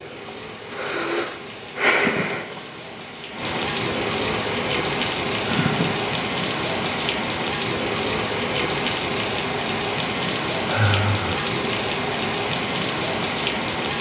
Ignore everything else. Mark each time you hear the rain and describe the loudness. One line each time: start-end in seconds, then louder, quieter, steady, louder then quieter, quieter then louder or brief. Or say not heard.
0.0-13.9 louder.